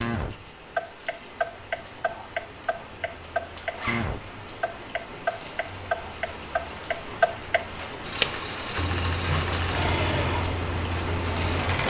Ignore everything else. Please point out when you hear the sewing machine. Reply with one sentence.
You can hear the sewing machine from 8.1 to 11.8 s.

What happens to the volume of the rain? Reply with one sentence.
The volume of the rain goes up.